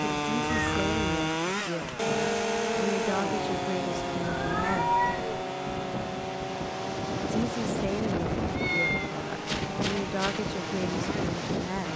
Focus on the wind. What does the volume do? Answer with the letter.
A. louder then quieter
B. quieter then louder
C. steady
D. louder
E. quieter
D.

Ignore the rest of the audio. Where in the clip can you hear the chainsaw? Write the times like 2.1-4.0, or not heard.
0.0-11.9.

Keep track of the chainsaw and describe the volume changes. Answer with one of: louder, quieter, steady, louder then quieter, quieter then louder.
quieter.